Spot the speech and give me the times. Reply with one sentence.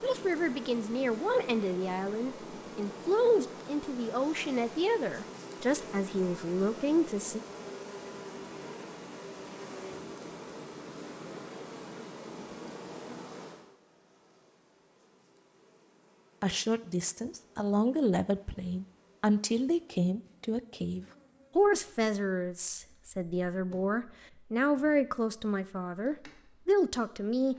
The speech can be heard from 0.0 to 7.4 s and from 16.4 to 27.5 s.